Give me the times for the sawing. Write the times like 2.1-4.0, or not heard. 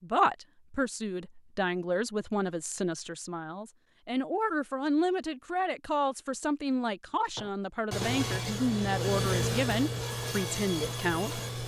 7.3-11.6.